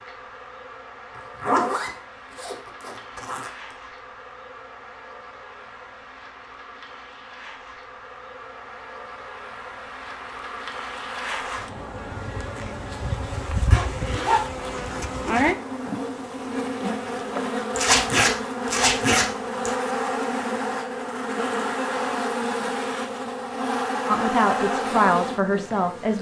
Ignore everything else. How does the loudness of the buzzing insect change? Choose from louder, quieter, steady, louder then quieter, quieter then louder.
louder.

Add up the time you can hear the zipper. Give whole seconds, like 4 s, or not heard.
6 s.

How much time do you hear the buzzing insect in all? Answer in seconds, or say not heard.
26 s.